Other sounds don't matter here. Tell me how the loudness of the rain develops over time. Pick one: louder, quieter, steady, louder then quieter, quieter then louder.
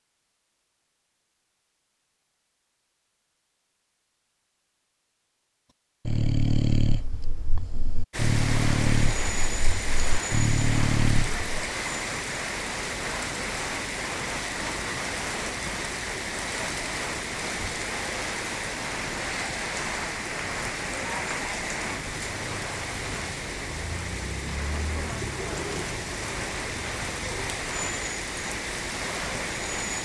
steady.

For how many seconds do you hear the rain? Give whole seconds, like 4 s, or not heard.
22 s.